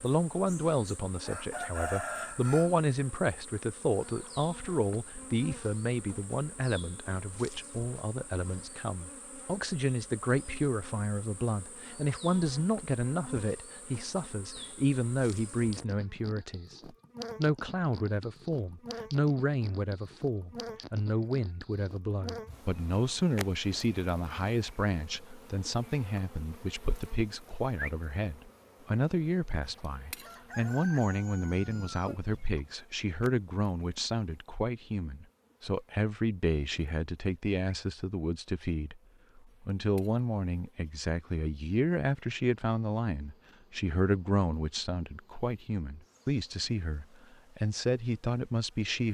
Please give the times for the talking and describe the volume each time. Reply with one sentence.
You can hear the talking from 0.0 to 49.1 s, at a steady volume.